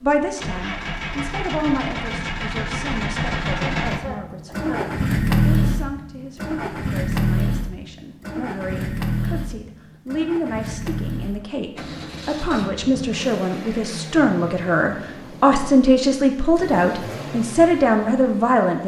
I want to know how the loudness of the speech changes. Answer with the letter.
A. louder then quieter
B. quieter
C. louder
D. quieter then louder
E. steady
D.